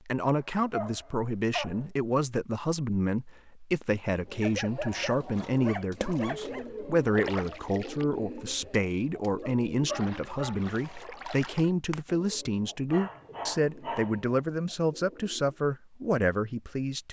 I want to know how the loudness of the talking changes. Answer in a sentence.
The loudness of the talking stays about the same.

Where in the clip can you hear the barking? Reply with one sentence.
You can hear the barking from 0.3 to 1.9 s, from 4.4 to 6.7 s, from 9.4 to 11.1 s and from 12.9 to 14.3 s.